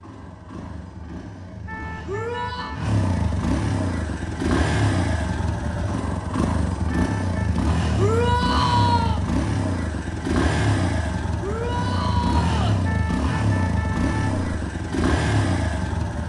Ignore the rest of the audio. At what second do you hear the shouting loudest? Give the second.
9 s.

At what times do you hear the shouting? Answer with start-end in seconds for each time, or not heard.
2.0-2.8, 8.0-9.2, 11.4-12.8.